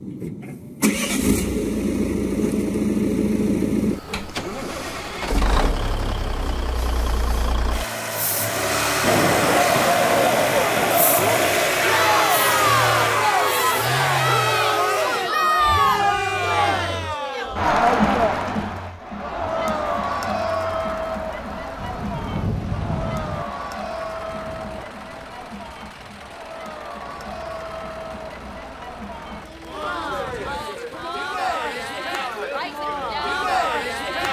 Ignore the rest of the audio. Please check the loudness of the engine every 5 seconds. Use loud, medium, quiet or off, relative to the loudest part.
loud, loud, loud, quiet, quiet, quiet, quiet.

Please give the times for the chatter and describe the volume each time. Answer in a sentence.
The chatter can be heard from 9.1 to 34.2 s, getting quieter then louder.